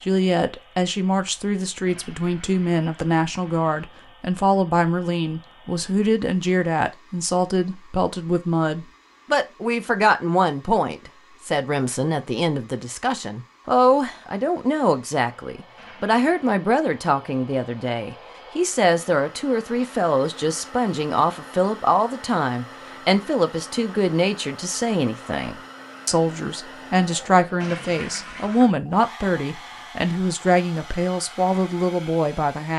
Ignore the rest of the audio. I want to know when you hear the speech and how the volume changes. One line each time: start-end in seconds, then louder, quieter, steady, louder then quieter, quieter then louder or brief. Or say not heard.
0.0-32.7 steady.